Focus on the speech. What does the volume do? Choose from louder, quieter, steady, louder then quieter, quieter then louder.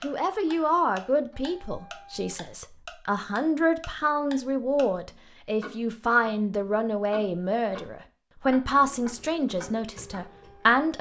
steady.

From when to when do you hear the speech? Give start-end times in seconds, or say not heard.
0.0-10.9.